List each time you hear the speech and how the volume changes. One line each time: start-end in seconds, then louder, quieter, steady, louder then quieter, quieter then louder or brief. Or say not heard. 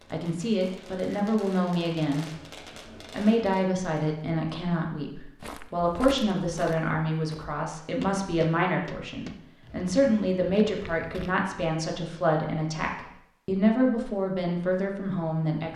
0.1-2.3 brief
3.1-15.7 steady.